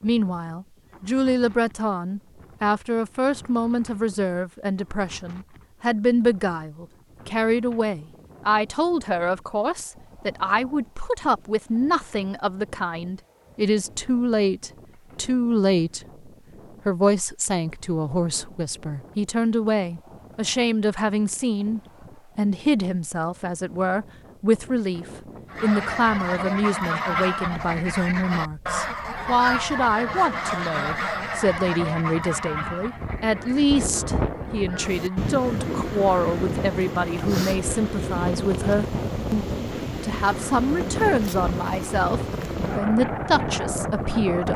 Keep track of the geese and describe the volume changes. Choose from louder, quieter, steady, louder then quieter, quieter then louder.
quieter.